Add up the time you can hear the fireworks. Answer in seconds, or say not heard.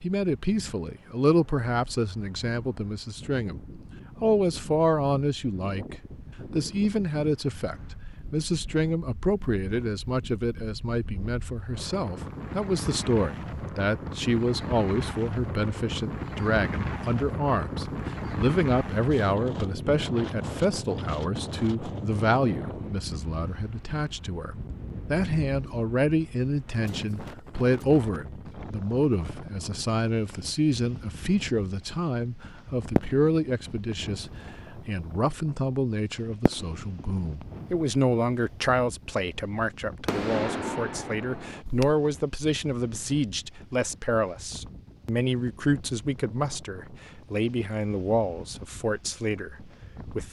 6 s.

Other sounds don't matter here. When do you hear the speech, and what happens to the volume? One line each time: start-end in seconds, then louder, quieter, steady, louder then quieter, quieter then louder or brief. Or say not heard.
0.0-50.2 steady.